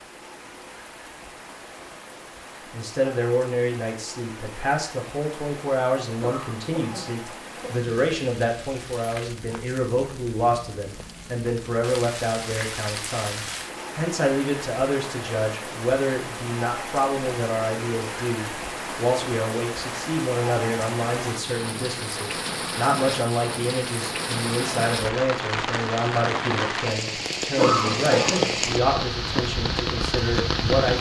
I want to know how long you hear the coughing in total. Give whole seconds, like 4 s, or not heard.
3 s.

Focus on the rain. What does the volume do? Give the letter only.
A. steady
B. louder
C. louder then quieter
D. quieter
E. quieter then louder
B.